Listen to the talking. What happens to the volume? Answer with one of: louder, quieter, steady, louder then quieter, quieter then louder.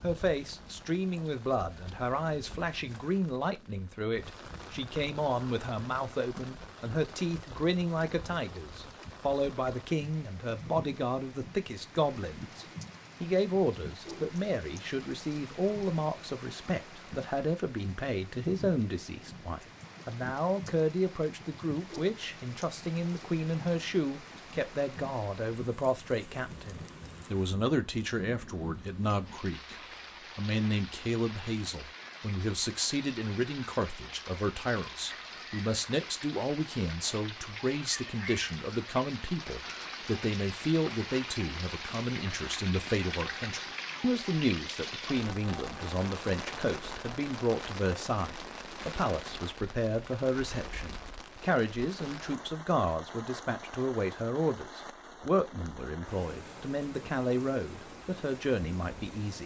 steady.